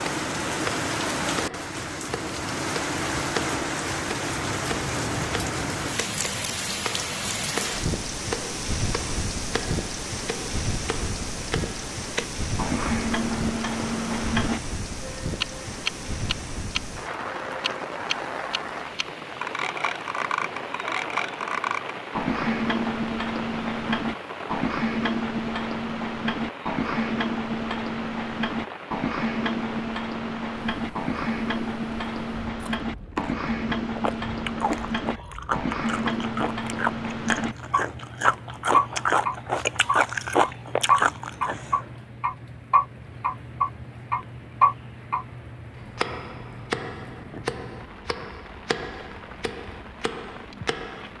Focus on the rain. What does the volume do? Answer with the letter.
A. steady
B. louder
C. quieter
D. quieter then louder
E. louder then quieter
C.